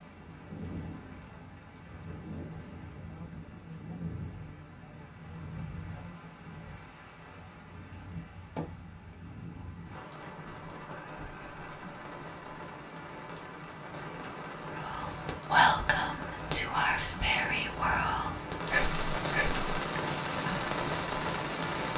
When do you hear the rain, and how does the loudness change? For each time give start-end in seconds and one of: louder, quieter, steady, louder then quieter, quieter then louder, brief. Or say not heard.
0.0-21.9 louder.